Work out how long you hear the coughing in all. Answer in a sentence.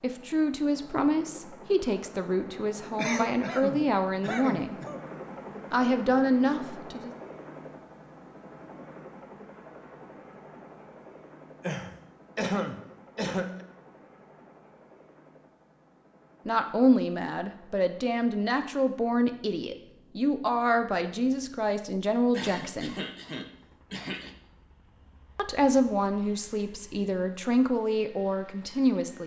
You can hear the coughing for 6 seconds altogether.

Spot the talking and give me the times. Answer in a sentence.
You can hear the talking from 0.0 to 4.8 s, from 5.7 to 7.1 s, from 16.4 to 22.9 s and from 25.4 to 29.2 s.